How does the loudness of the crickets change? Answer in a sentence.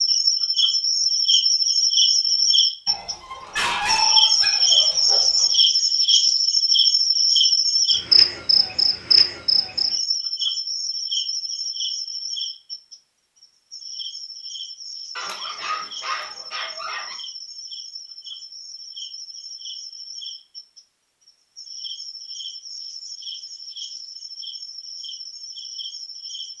The volume of the crickets goes down.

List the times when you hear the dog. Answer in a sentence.
The dog can be heard from 2.9 to 5.5 s and from 15.2 to 17.1 s.